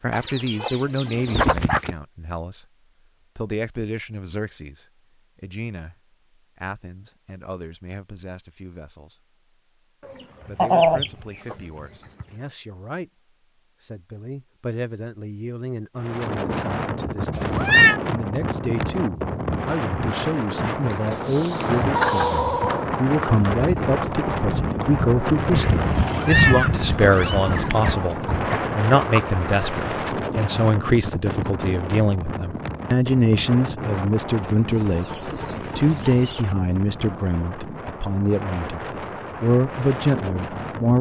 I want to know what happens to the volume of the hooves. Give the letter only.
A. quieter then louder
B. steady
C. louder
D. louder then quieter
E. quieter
D.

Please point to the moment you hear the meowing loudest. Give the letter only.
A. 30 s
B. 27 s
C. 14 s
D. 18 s
D.